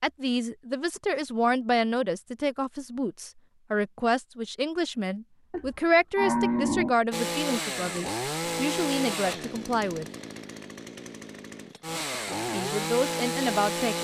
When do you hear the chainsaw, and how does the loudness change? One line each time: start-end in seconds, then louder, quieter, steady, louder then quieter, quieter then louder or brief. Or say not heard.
7.1-13.9 quieter then louder.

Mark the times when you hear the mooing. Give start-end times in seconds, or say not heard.
5.5-7.0.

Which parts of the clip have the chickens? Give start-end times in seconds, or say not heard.
not heard.